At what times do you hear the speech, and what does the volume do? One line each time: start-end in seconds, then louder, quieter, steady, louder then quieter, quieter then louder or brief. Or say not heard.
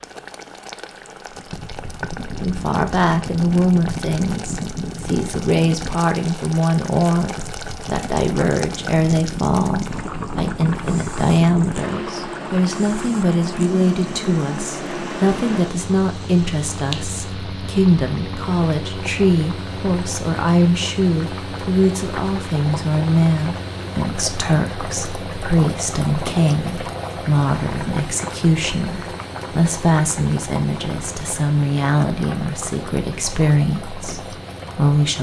2.4-35.1 steady.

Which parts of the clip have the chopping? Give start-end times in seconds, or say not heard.
not heard.